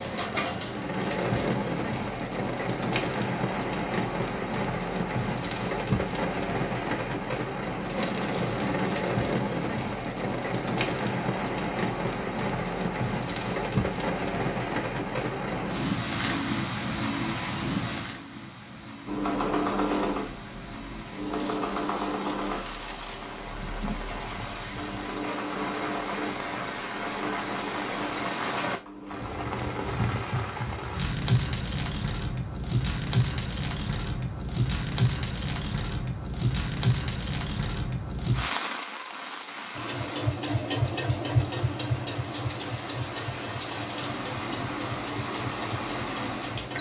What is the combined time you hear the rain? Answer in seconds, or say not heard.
47 s.